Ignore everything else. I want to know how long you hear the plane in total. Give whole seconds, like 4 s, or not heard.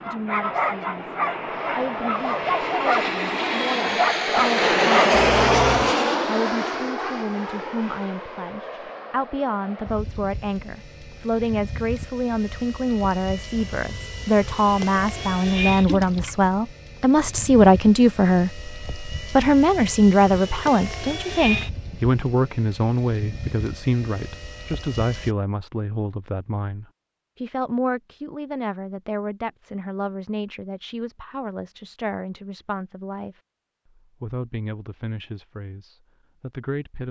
25 s.